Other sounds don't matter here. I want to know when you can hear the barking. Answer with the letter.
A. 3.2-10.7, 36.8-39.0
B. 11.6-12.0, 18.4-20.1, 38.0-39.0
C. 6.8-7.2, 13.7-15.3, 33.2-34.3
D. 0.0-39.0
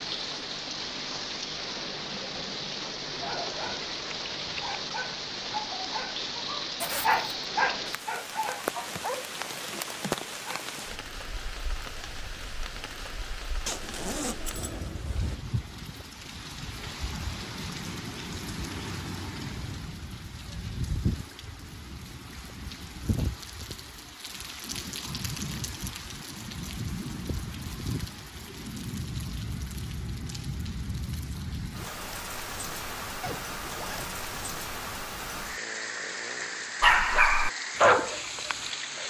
A.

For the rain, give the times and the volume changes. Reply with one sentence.
You can hear the rain from 0.0 to 39.0 s, at a steady volume.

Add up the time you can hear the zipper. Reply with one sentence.
The zipper can be heard for 3 seconds in total.